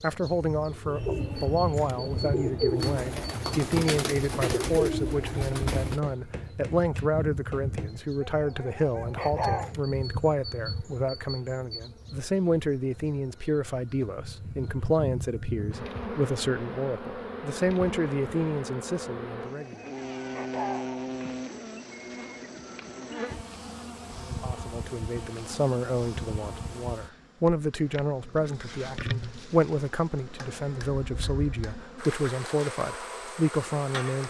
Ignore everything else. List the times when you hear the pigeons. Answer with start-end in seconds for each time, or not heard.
0.8-6.0.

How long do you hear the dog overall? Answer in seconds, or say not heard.
3 s.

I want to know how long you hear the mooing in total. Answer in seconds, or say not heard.
not heard.